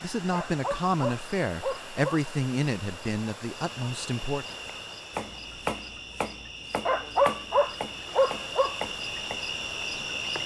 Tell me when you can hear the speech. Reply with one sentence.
You can hear the speech from 0.0 to 4.5 s.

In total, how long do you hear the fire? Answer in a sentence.
The fire can't be heard in this clip.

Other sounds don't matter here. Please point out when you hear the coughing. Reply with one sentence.
You can't hear the coughing here.